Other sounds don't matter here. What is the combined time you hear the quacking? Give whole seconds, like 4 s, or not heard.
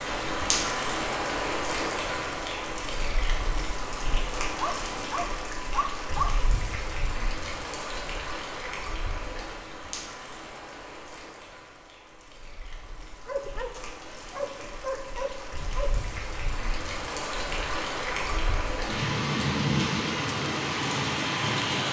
not heard.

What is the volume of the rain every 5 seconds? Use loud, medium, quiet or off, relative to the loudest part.
loud, medium, quiet, loud, loud.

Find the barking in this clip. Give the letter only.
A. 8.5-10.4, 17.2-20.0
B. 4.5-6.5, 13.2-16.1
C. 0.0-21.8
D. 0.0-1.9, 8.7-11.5
B.